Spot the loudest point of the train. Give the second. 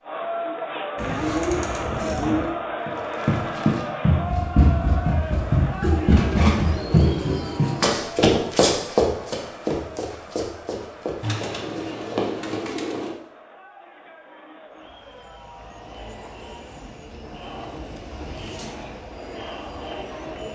18 s.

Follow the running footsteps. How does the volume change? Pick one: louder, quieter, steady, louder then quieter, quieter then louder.
quieter.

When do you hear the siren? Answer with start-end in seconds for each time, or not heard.
not heard.